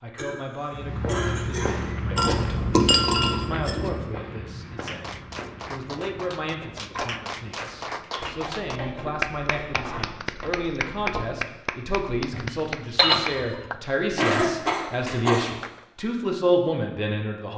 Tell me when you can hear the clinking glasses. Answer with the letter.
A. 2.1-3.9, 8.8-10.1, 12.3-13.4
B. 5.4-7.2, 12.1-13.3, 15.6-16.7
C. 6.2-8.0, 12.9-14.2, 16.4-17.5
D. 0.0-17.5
A.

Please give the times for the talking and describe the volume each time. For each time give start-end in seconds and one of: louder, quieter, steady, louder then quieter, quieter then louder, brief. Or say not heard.
0.0-17.5 louder.